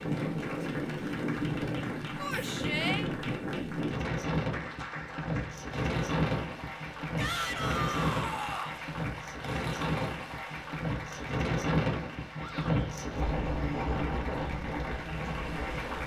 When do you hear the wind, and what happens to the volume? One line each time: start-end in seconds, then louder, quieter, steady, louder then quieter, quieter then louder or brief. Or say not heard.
0.0-16.0 steady.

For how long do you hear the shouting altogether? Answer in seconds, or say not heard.
3 s.